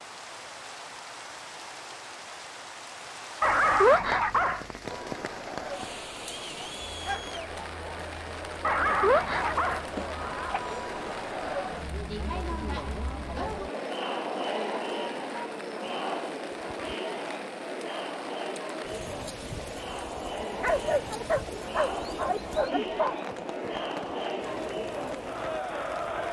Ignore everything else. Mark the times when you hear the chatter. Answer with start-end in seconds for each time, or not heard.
4.8-26.2.